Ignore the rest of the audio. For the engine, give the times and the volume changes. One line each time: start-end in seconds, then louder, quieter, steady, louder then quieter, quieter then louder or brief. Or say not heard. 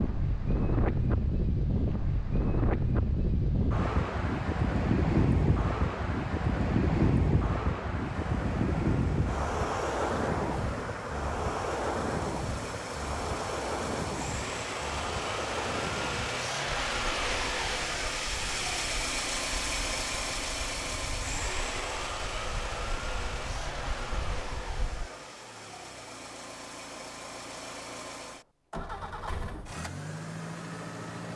8.1-31.3 louder then quieter.